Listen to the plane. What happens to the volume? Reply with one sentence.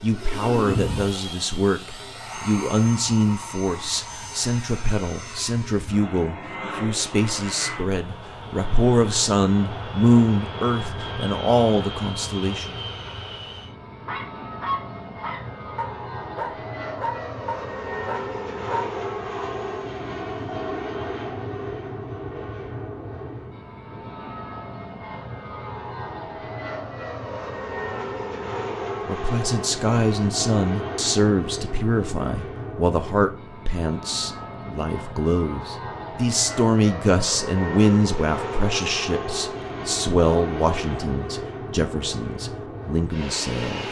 The loudness of the plane stays about the same.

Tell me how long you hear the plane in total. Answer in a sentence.
You can hear the plane for 44 seconds altogether.